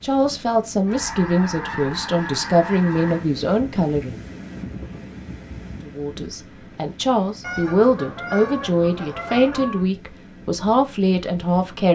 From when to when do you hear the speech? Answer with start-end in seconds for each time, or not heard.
0.0-4.2, 5.8-11.8.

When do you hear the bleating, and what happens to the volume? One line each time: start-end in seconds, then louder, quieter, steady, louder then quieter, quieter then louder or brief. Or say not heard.
not heard.